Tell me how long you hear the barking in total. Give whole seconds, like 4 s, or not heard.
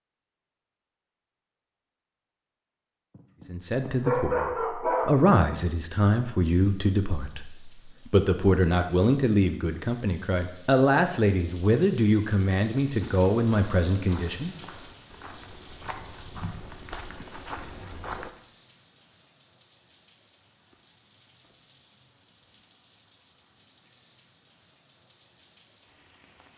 2 s.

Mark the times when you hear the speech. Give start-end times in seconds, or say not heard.
3.5-14.6.